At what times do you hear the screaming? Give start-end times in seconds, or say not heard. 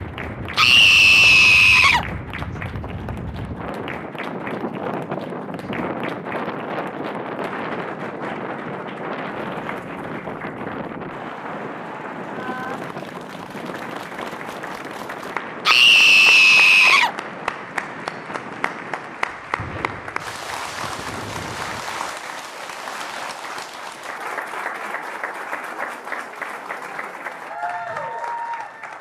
0.6-2.0, 15.7-17.1.